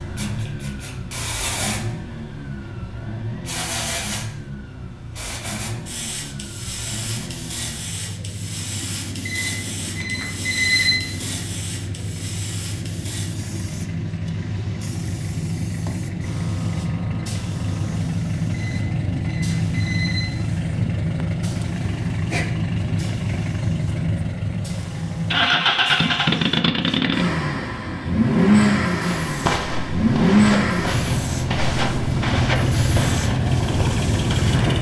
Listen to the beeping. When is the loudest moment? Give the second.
11 s.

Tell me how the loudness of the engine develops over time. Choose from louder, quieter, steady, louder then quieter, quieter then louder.
louder.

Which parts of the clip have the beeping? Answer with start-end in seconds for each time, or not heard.
9.2-11.0, 18.5-20.3.